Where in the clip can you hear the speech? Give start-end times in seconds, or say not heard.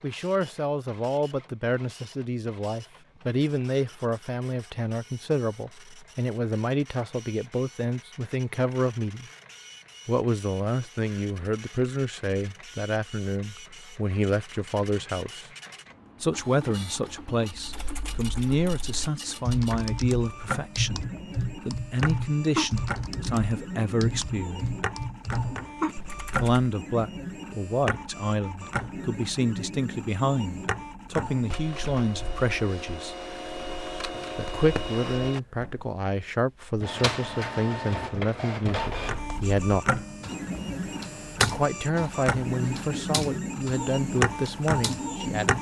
0.0-9.2, 10.1-15.5, 16.2-24.6, 26.4-33.1, 34.4-40.0, 41.5-45.5.